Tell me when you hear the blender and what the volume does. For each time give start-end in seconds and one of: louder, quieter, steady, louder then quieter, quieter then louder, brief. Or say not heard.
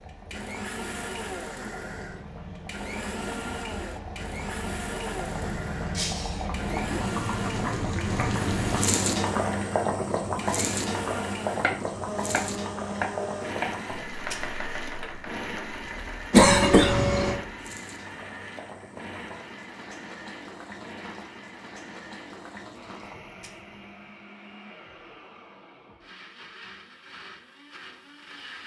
0.0-28.6 quieter.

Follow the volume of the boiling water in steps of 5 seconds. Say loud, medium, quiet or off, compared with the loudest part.
quiet, loud, loud, quiet, quiet, off.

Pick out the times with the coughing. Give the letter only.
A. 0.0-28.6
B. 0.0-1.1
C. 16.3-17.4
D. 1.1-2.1
C.